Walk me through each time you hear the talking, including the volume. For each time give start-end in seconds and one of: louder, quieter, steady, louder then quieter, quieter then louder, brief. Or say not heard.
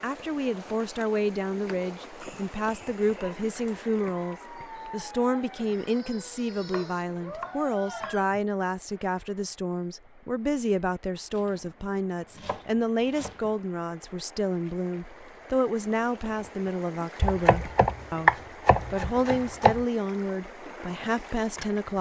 0.0-21.9 steady.